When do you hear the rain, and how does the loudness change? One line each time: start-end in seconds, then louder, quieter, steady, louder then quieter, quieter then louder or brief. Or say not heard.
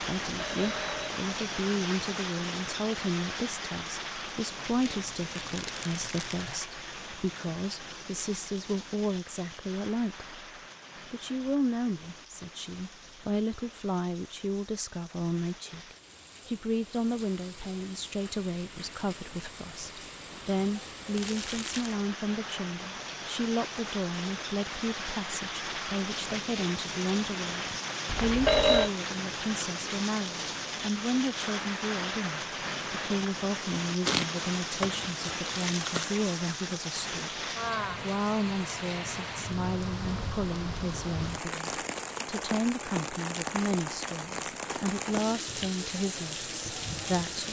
0.0-47.4 quieter then louder.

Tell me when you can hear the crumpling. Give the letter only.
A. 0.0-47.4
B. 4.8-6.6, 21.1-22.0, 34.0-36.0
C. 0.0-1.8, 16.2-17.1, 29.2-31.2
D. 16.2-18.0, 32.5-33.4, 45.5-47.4
B.